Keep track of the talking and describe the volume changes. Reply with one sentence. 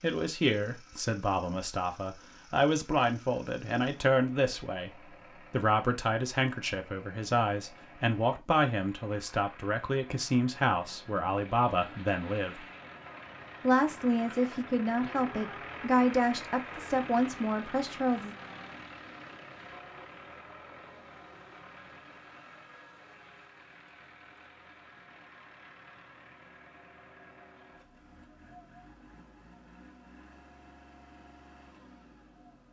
The loudness of the talking stays about the same.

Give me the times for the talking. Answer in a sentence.
You can hear the talking from 0.0 to 12.7 s and from 13.6 to 18.4 s.